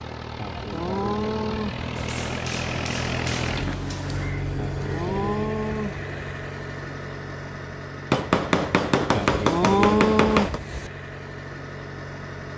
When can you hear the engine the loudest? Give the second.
3 s.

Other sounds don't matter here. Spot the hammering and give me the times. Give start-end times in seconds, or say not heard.
1.9-4.3, 8.1-10.6.